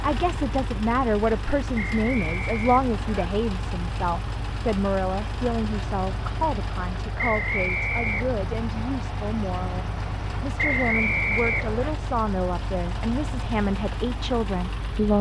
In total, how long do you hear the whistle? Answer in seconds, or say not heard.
4 s.